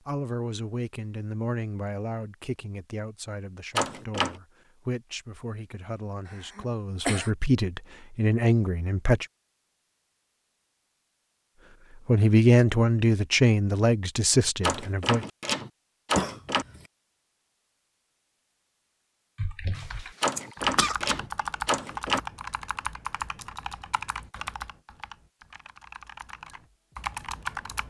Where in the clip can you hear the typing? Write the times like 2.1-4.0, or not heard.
19.4-27.8.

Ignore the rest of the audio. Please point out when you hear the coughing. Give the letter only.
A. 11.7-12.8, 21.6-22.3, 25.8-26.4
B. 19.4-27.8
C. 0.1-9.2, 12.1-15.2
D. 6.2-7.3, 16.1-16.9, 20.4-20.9
D.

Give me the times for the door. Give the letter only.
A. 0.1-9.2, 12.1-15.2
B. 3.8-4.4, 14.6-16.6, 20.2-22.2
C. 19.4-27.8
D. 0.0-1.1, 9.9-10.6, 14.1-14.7
B.